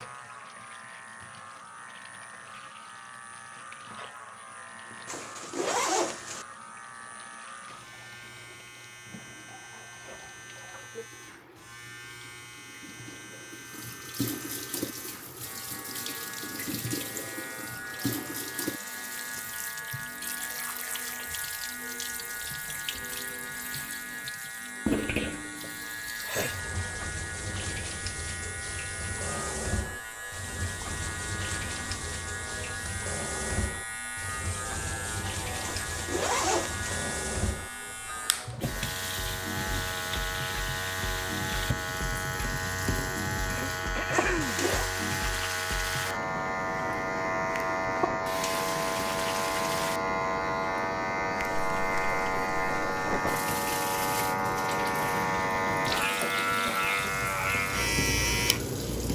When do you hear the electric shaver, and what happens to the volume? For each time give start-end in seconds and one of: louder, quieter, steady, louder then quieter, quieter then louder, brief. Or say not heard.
0.0-59.0 louder.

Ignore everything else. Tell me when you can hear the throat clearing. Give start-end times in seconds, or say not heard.
43.5-44.6.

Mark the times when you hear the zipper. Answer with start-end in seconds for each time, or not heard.
5.0-6.5, 35.6-37.0, 44.1-44.9.